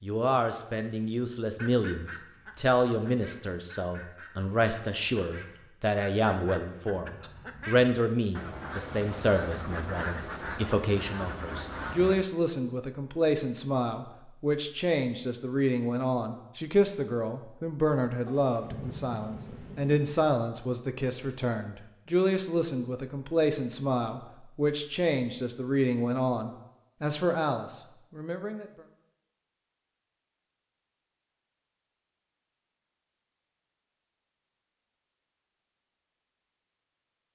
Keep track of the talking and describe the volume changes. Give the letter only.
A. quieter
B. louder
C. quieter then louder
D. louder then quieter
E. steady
E.